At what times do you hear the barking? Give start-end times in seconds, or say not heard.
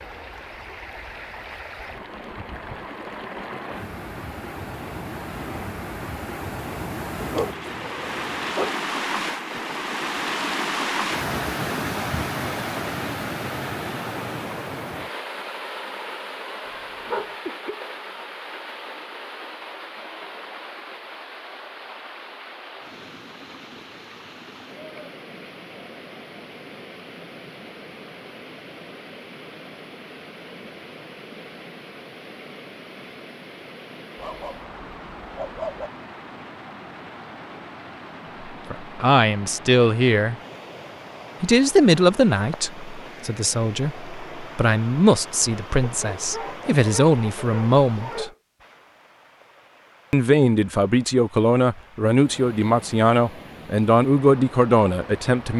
7.2-8.8, 16.6-17.4, 34.1-35.9, 45.8-48.4.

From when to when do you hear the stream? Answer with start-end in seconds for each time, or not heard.
0.0-55.5.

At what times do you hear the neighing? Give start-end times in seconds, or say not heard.
not heard.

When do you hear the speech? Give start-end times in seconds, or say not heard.
38.7-40.4, 41.4-48.3, 50.1-55.5.